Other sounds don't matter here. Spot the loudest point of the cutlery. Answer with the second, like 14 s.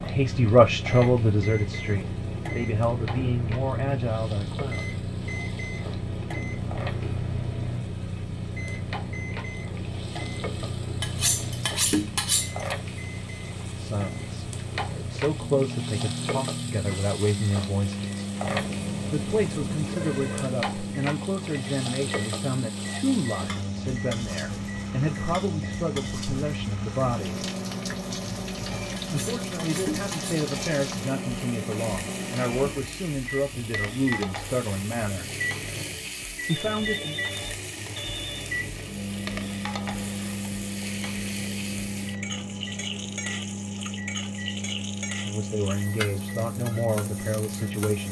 12 s.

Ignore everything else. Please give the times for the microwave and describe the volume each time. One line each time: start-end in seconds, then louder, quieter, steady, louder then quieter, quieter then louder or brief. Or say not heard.
0.0-48.0 steady.